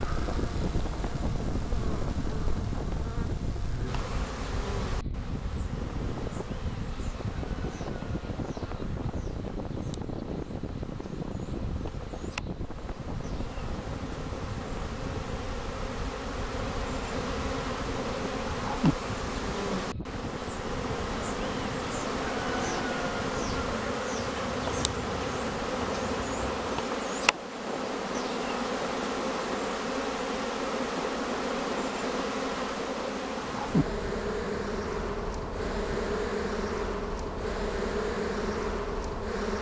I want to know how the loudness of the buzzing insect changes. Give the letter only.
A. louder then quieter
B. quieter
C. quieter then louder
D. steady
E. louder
E.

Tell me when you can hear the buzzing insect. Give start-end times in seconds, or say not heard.
0.0-39.5.